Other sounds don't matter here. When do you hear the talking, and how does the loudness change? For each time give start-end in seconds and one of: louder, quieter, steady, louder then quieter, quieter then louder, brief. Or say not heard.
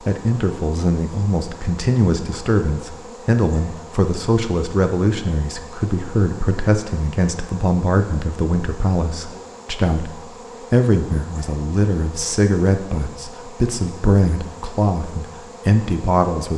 0.1-16.5 steady.